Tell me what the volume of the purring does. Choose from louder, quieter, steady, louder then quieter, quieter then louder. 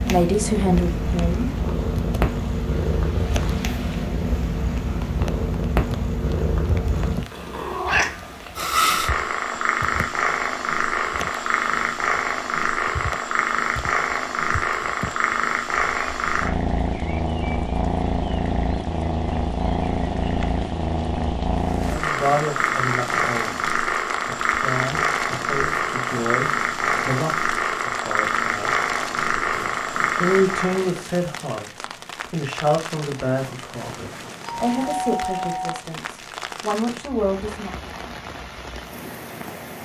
steady.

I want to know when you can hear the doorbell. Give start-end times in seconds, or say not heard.
34.5-35.8.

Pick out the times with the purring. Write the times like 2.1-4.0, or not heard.
0.0-30.9.